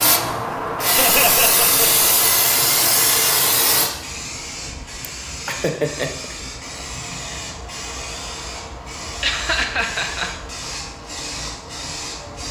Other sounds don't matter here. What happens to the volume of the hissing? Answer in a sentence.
The loudness of the hissing goes down.